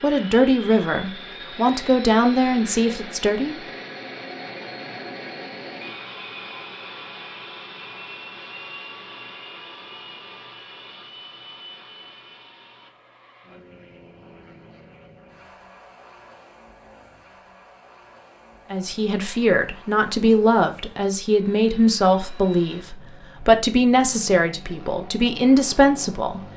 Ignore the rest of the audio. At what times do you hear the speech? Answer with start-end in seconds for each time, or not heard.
0.0-3.5, 18.7-26.4.